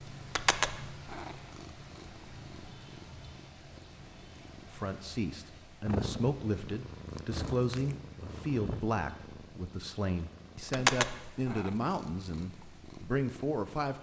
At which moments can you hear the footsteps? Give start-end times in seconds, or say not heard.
not heard.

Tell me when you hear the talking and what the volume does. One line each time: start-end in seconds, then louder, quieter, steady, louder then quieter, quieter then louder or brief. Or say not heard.
4.7-13.9 steady.